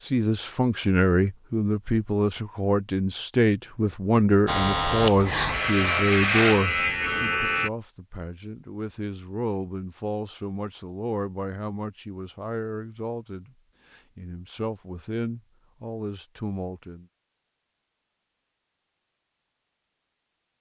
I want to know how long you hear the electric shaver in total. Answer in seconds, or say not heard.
3 s.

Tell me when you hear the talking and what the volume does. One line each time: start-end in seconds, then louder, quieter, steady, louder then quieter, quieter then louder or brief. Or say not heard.
0.1-17.1 quieter.